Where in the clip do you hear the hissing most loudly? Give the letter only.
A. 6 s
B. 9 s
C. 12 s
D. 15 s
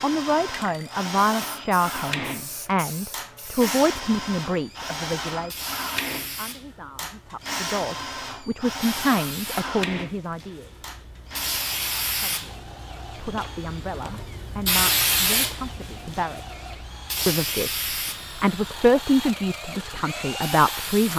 D.